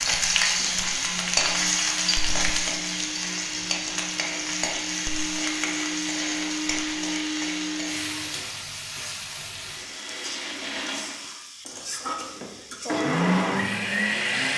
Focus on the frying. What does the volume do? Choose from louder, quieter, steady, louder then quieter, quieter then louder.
quieter.